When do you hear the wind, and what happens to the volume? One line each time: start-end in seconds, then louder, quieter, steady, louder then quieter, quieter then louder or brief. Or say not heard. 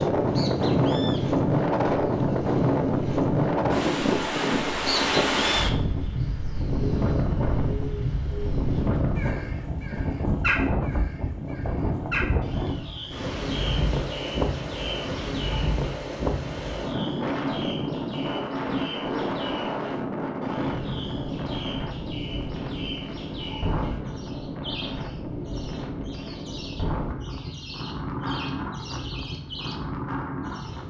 0.0-30.8 quieter.